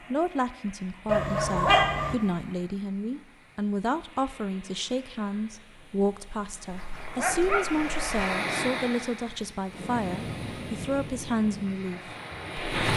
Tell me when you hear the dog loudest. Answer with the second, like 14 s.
2 s.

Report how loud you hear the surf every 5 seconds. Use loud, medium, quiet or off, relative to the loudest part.
quiet, loud, loud.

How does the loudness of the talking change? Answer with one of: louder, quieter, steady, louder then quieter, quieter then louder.
steady.